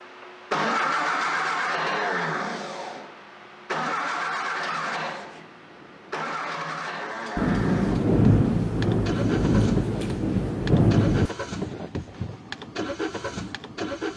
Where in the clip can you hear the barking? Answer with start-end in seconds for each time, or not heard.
not heard.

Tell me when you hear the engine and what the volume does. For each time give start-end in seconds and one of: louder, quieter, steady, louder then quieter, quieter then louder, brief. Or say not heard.
0.0-14.1 quieter.